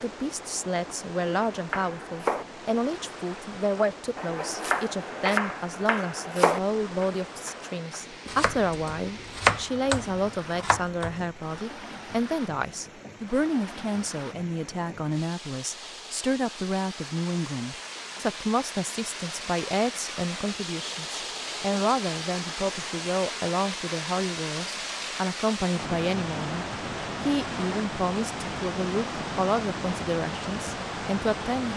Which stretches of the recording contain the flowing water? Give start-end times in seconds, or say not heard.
0.0-31.7.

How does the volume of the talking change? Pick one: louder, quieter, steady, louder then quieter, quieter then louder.
steady.